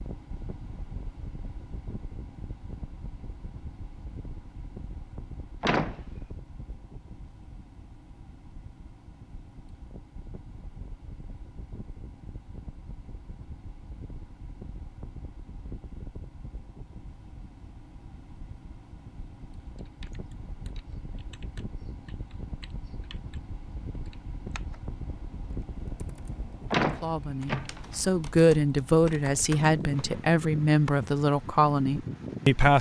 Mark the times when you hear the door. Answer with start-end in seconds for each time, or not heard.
5.6-6.0, 26.7-27.9.